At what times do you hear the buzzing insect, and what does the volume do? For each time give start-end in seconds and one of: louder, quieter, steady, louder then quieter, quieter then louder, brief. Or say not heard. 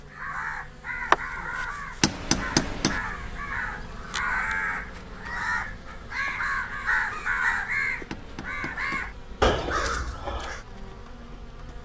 0.0-11.7 quieter.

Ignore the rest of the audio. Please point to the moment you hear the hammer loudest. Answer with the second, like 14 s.
2 s.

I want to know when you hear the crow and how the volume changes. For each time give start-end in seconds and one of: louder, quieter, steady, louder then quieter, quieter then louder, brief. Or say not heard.
0.1-10.7 louder.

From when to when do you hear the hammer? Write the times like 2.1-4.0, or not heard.
2.0-3.0, 8.1-9.1.